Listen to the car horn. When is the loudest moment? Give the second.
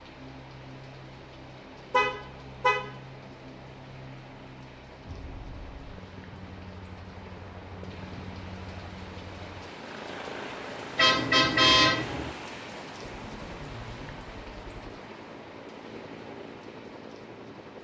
12 s.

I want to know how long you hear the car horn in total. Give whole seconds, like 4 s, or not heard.
2 s.